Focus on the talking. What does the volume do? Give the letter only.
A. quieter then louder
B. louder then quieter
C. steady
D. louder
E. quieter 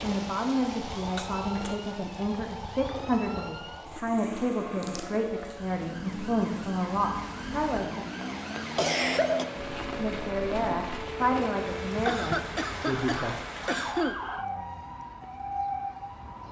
C.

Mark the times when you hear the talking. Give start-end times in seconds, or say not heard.
0.0-8.1, 9.9-13.3.